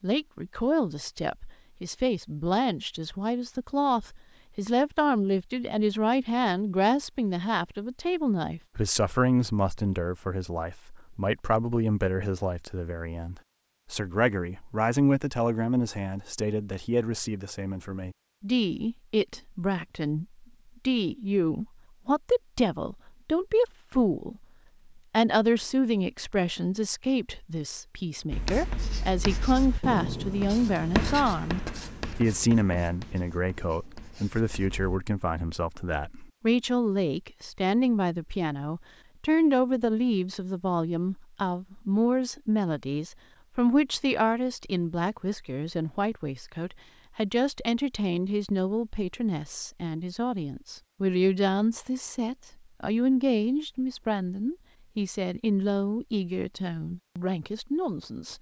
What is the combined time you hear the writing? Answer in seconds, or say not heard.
7 s.